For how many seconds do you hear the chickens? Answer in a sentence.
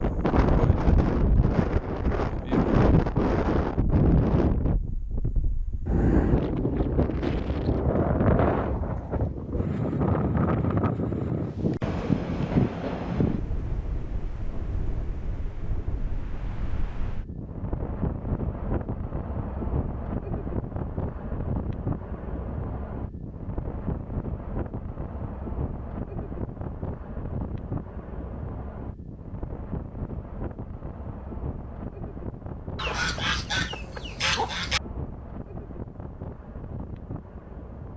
You can hear the chickens for 2 seconds altogether.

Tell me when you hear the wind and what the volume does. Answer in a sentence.
The wind can be heard from 0.0 to 37.9 s, getting quieter.